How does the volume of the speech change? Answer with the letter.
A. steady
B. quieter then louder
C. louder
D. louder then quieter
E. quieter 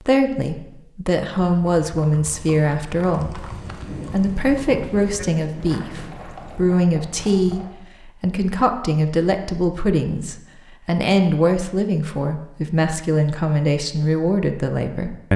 A.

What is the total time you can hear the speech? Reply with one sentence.
You can hear the speech for 15 seconds altogether.